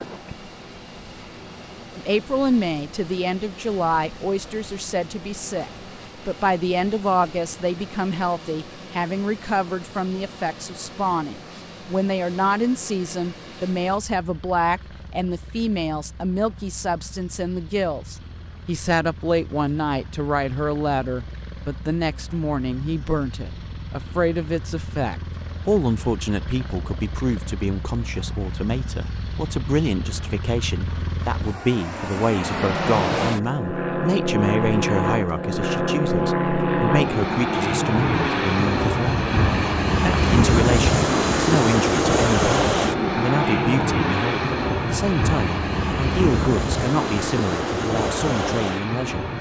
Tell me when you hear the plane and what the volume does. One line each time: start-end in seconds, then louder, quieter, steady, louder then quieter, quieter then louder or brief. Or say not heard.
0.0-49.3 louder.